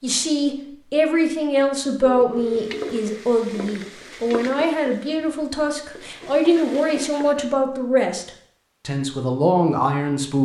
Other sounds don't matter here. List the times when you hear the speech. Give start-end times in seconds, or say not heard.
0.0-10.4.